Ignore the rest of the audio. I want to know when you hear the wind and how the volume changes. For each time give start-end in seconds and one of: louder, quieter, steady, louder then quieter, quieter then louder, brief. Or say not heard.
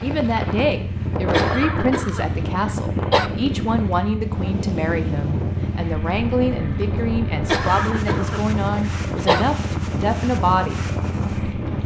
0.0-11.8 steady.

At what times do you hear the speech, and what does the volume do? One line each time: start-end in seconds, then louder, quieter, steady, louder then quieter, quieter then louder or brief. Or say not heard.
0.0-10.8 steady.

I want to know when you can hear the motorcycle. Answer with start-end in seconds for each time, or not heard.
0.0-11.8.